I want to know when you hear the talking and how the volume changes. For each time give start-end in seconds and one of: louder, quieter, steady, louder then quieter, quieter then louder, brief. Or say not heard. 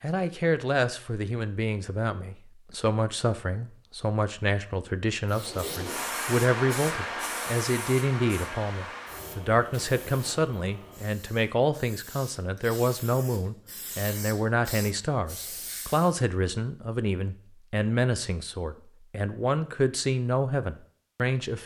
0.0-21.6 steady.